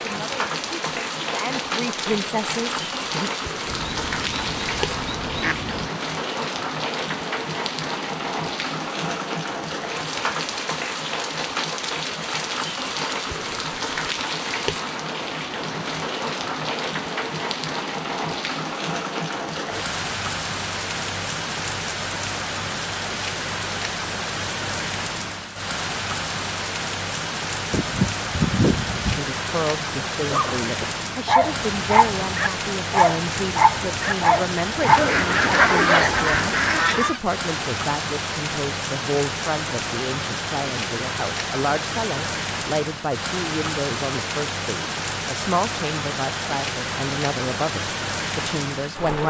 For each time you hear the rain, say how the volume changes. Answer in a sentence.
You can hear the rain from 0.0 to 49.2 s, at a steady volume.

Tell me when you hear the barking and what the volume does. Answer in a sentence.
The barking can be heard from 30.3 to 36.4 s, at a steady volume.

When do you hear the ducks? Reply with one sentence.
You can hear the ducks from 3.6 to 5.9 s, from 27.7 to 29.3 s and from 34.9 to 37.2 s.